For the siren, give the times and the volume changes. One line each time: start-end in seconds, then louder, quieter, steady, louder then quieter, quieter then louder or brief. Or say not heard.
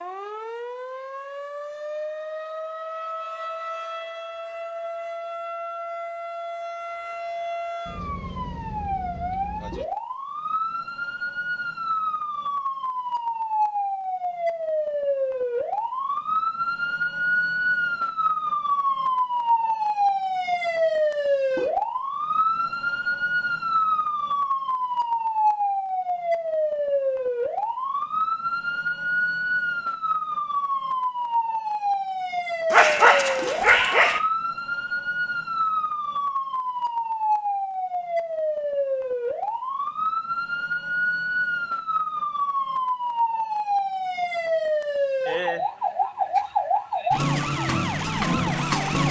0.0-49.0 louder.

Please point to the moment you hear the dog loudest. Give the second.
33 s.